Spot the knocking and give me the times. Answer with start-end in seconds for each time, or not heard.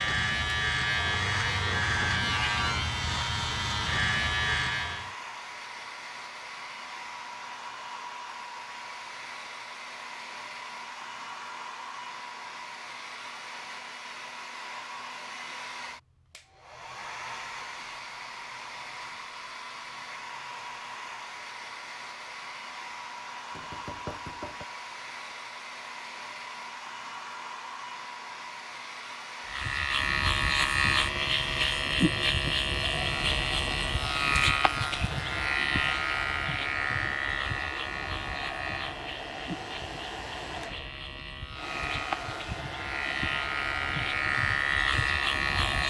23.5-24.6.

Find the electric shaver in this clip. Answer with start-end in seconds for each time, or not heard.
0.0-5.2, 29.4-45.8.